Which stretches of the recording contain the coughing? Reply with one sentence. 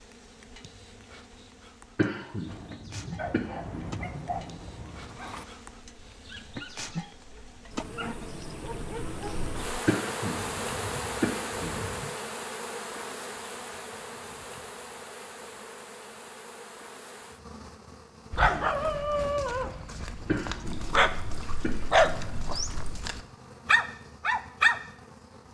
The coughing can be heard from 1.9 to 4.2 s, from 9.8 to 12.1 s and from 20.2 to 22.5 s.